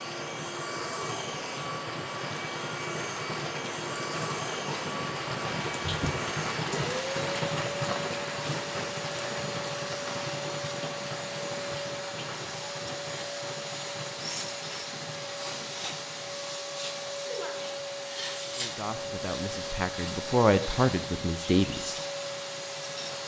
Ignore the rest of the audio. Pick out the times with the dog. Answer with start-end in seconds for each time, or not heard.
not heard.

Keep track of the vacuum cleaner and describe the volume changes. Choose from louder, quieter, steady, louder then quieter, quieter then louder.
steady.